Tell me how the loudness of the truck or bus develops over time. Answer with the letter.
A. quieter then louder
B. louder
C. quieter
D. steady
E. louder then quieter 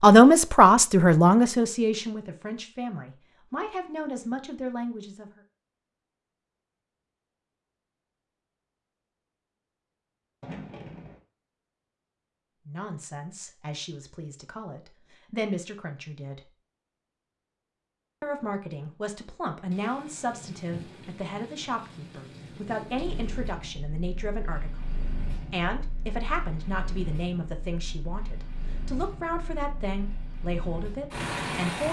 B.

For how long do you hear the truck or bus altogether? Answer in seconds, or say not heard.
9 s.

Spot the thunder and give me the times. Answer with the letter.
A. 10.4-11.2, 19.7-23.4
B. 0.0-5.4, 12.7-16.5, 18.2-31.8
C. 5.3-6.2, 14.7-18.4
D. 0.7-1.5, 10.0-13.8
A.